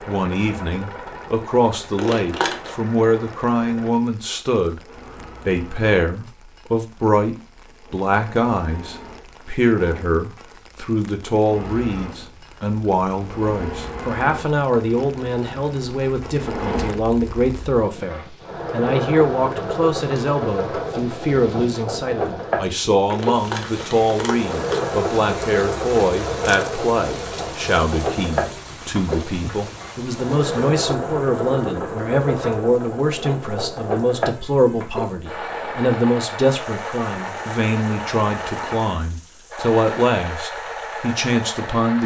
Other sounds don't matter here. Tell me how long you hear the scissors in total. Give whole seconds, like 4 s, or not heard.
3 s.